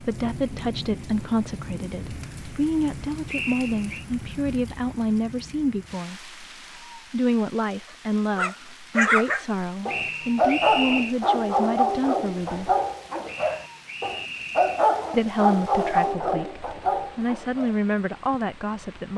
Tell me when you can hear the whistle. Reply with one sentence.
The whistle can be heard from 3.2 to 4.0 s, from 9.8 to 11.2 s and from 13.2 to 14.9 s.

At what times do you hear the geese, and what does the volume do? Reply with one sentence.
The geese can't be heard in this clip.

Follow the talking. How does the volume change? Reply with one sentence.
The loudness of the talking stays about the same.